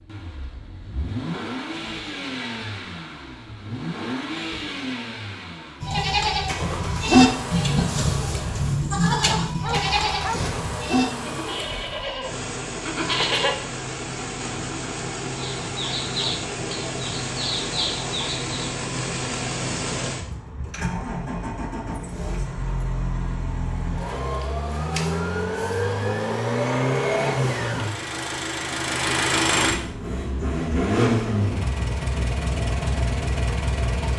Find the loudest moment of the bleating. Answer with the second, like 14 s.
7 s.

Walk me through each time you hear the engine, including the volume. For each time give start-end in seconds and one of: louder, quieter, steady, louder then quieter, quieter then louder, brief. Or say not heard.
0.0-34.1 louder.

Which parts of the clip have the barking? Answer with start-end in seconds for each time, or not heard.
9.1-10.4.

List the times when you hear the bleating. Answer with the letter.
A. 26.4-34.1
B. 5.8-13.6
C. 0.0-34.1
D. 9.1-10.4
B.